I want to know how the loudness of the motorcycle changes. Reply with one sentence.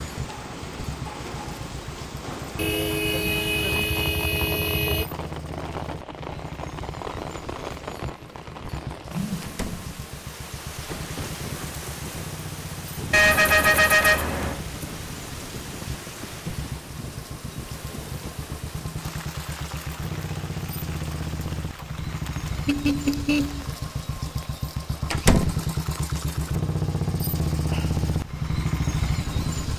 The loudness of the motorcycle goes up.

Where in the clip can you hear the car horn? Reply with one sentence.
You can hear the car horn from 2.5 to 5.0 s, from 13.1 to 14.6 s and from 22.6 to 23.6 s.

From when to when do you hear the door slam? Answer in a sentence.
You can hear the door slam from 9.4 to 9.9 s and from 25.1 to 25.6 s.